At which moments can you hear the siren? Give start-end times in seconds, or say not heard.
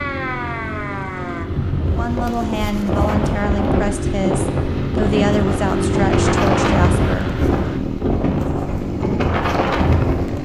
0.0-1.6.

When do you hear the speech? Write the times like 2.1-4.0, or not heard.
1.8-7.2.